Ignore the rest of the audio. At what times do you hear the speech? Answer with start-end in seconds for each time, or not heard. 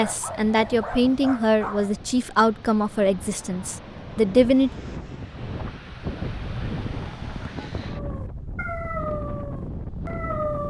0.0-4.7.